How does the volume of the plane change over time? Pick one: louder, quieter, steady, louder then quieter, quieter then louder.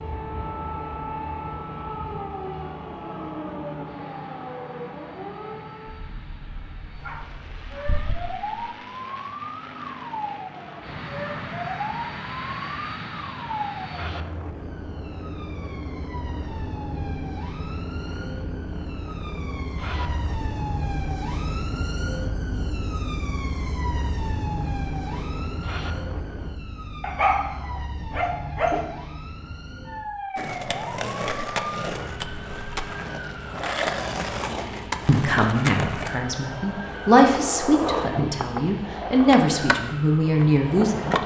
louder.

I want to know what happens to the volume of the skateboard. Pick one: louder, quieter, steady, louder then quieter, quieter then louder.
steady.